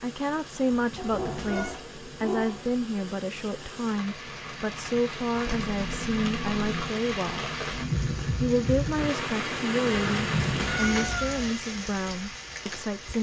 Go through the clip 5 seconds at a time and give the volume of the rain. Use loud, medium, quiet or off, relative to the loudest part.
medium, loud, loud.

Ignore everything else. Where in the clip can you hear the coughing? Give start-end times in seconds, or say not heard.
not heard.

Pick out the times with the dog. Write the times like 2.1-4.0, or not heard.
0.9-2.8.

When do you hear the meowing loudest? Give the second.
11 s.